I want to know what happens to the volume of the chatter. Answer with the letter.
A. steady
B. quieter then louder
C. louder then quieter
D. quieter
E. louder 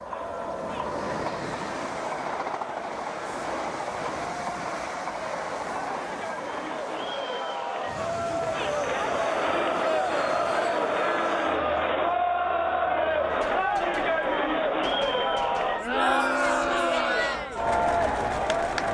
E.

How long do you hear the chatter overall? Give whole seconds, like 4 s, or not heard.
19 s.